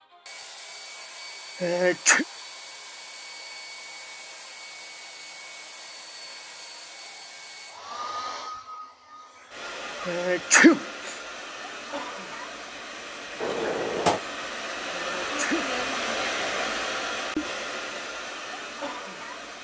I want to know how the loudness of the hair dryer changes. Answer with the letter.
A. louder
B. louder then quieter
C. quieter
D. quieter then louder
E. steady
A.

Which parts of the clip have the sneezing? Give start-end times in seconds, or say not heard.
1.6-2.2, 10.1-11.2, 14.9-15.7.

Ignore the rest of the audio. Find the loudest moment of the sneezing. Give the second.
11 s.